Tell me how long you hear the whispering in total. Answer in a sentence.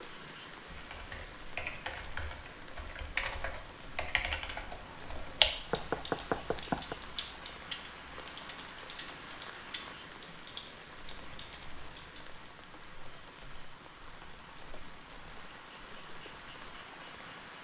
The whispering can't be heard in this clip.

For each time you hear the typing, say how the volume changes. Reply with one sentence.
You can hear the typing from 0.7 to 12.4 s, getting louder then quieter.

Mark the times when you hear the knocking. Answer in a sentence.
You can hear the knocking from 5.7 to 7.0 s.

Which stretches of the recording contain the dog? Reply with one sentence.
You can't hear the dog here.